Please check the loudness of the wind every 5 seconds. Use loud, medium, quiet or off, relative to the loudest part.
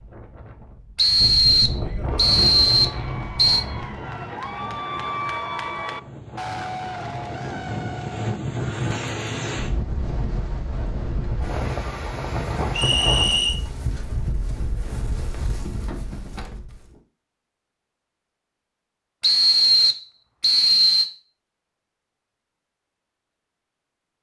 loud, loud, loud, medium, off.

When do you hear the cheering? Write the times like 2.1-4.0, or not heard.
2.1-8.9.